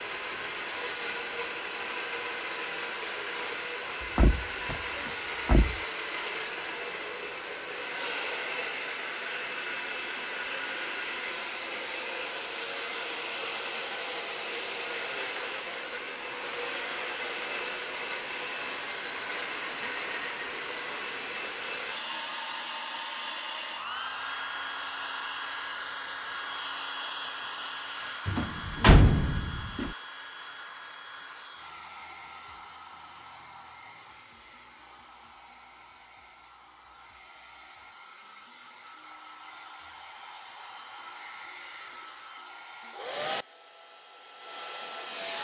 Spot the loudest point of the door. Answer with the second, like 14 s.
29 s.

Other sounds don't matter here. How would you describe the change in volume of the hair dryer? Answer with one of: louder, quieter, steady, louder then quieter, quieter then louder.
quieter.